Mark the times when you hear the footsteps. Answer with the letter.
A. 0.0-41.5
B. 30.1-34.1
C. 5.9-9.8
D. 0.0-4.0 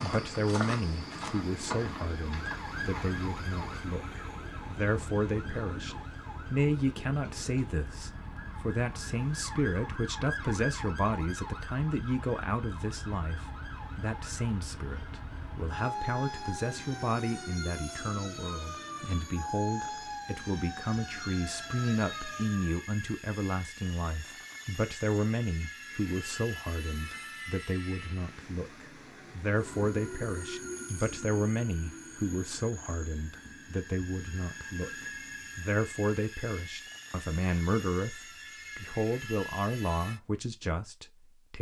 D.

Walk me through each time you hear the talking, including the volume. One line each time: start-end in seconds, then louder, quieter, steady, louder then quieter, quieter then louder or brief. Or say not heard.
0.0-41.5 steady.